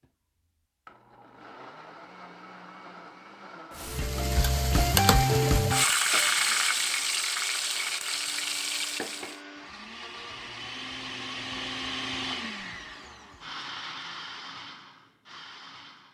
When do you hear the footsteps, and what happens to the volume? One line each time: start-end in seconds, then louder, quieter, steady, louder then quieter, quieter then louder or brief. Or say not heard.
not heard.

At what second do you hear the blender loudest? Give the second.
12 s.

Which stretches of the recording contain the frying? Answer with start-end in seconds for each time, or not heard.
3.7-9.4.